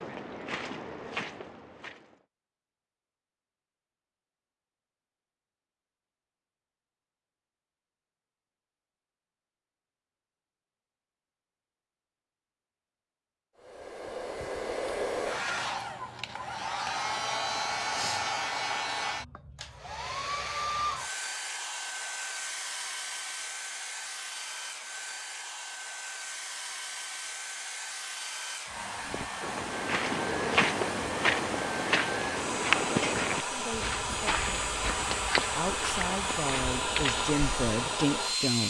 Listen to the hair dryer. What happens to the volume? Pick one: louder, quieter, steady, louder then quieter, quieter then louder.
quieter then louder.